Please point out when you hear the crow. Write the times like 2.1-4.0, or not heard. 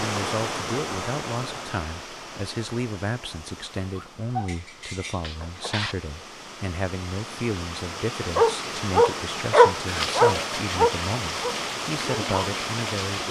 not heard.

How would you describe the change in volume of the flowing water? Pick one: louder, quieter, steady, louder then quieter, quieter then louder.
quieter then louder.